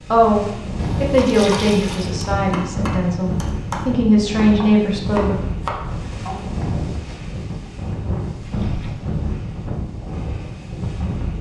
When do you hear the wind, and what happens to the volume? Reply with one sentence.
You can hear the wind from 0.0 to 11.3 s, at a steady volume.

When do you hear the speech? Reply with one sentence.
The speech can be heard from 0.1 to 5.4 s.